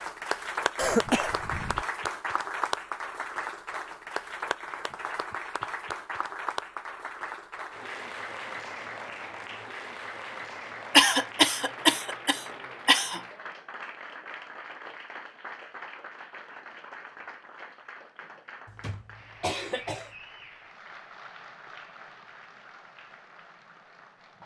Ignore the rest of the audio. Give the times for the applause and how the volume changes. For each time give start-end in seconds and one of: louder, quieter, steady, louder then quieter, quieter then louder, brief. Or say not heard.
0.0-24.4 quieter.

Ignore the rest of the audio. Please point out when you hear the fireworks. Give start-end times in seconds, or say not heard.
not heard.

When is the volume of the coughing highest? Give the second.
11 s.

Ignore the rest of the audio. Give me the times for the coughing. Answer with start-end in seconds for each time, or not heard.
0.8-1.9, 10.9-13.2, 18.6-20.1.